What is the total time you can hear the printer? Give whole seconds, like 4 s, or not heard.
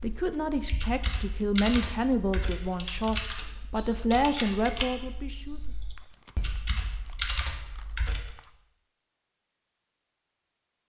not heard.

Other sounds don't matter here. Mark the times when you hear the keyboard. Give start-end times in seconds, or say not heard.
0.0-8.4.